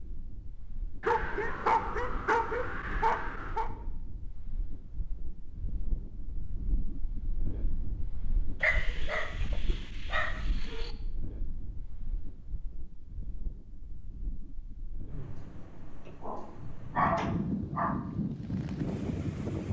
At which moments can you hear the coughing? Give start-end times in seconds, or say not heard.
not heard.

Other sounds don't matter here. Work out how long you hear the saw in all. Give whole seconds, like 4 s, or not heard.
not heard.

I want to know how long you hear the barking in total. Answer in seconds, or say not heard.
7 s.